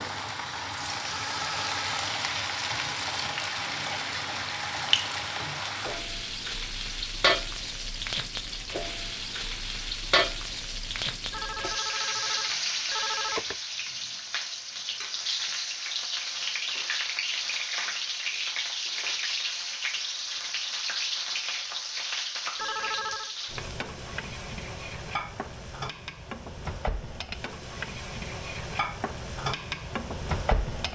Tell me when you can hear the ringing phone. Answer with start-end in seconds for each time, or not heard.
1.1-2.0, 11.3-13.6, 22.6-23.4.